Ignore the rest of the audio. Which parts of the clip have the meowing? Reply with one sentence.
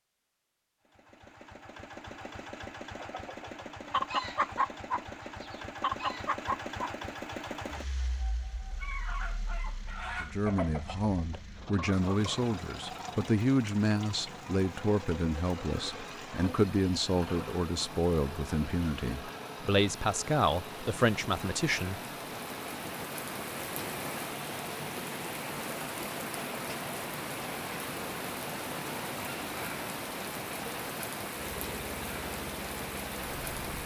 You can't hear the meowing here.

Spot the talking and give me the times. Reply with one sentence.
You can hear the talking from 10.2 to 22.0 s.